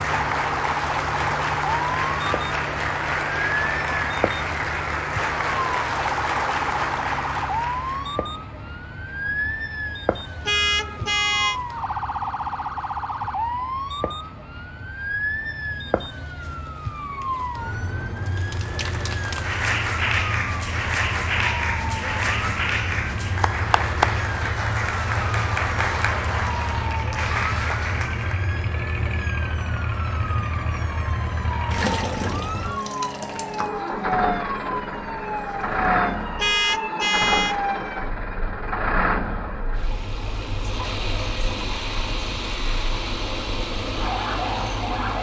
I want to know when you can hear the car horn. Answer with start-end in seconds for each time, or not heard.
10.4-11.6, 36.4-37.5.